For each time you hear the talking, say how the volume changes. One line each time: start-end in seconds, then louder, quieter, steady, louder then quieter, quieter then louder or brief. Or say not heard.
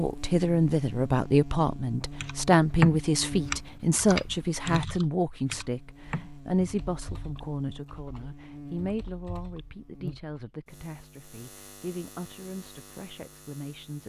0.0-14.0 quieter.